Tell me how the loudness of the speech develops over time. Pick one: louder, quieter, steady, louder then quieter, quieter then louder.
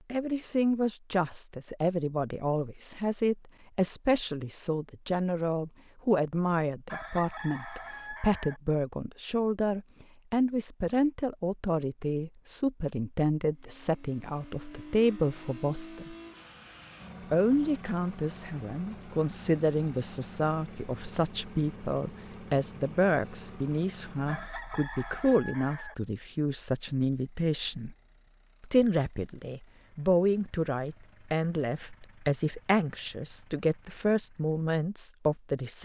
steady.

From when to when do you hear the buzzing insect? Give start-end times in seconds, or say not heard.
not heard.